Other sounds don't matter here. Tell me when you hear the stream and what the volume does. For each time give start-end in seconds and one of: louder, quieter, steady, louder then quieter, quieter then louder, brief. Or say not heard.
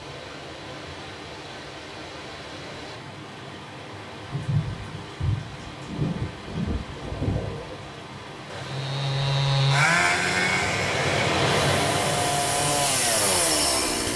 0.0-14.1 louder.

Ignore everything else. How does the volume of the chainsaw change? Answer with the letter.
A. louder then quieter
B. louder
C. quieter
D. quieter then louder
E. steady
D.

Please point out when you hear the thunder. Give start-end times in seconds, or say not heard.
4.3-7.9.